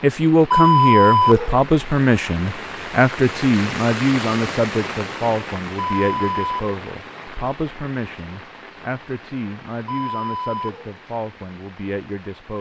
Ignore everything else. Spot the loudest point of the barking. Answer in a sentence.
The volume of the barking peaks at 1 second.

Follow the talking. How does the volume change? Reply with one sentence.
The volume of the talking goes down.